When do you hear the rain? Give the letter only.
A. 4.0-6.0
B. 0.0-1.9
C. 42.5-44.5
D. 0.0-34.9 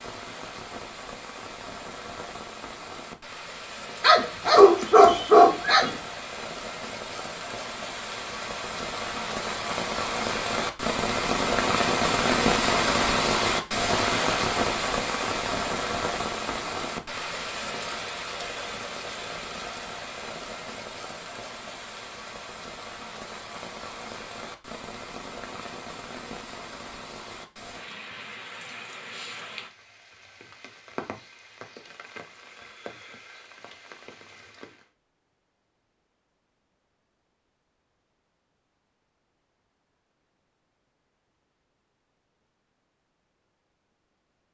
D.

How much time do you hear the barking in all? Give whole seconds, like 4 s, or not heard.
2 s.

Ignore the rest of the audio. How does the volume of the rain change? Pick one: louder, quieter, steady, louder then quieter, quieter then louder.
louder then quieter.